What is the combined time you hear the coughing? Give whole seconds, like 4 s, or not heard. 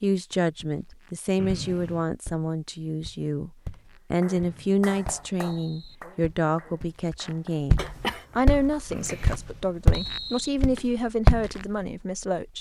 2 s.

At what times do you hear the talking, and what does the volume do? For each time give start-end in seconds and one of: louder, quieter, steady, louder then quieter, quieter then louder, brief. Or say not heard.
0.0-12.5 steady.